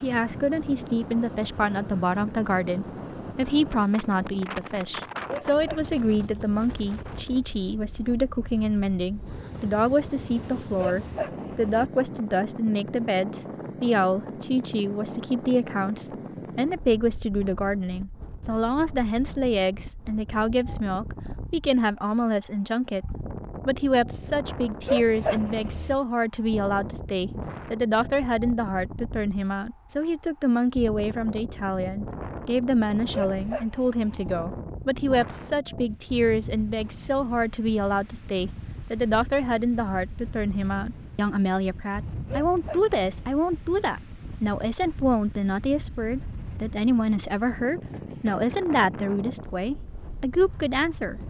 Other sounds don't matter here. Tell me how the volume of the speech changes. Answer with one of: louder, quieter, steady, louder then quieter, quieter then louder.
steady.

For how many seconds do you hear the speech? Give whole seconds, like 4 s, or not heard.
51 s.